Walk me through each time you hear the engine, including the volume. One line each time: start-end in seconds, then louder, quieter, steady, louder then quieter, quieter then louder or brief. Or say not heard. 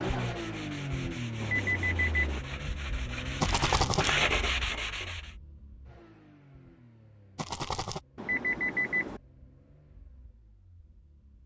0.0-11.4 quieter.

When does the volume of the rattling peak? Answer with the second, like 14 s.
4 s.